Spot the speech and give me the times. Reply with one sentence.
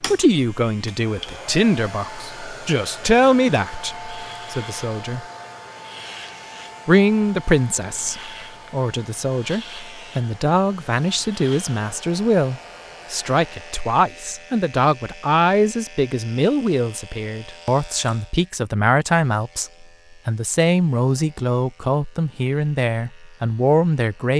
The speech can be heard from 0.1 to 5.2 s and from 6.8 to 24.3 s.